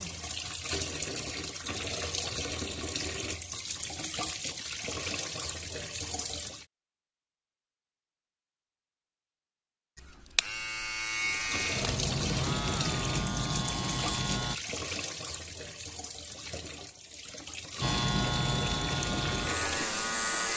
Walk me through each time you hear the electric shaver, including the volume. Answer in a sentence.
The electric shaver can be heard from 9.9 to 14.6 s, at a steady volume; and briefly from 17.8 to 20.5 s.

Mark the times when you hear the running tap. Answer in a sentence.
You can hear the running tap from 0.0 to 6.7 s and from 11.2 to 20.5 s.